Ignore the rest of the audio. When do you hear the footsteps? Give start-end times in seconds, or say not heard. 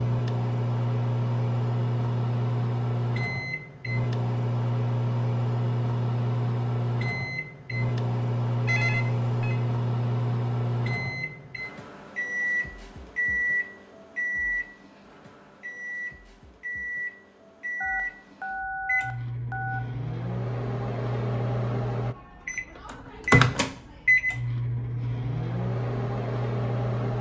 not heard.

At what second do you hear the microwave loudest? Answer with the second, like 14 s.
24 s.